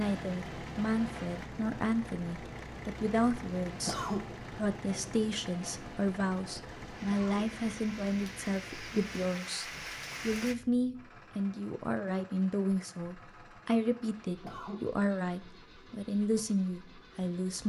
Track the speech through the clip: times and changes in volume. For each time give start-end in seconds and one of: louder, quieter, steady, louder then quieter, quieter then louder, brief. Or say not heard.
0.0-9.7 steady
10.2-17.6 steady.